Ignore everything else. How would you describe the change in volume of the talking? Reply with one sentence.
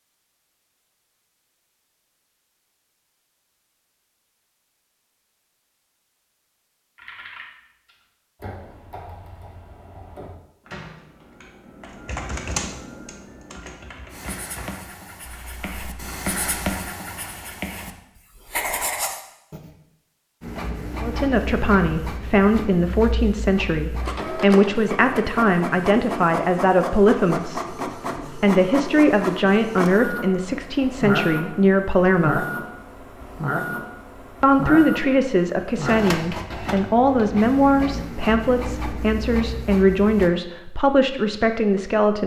The volume of the talking stays about the same.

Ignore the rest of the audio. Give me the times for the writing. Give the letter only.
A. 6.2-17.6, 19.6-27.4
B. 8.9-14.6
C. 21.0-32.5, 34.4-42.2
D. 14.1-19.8
D.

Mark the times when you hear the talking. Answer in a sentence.
You can hear the talking from 21.0 to 32.5 s and from 34.4 to 42.2 s.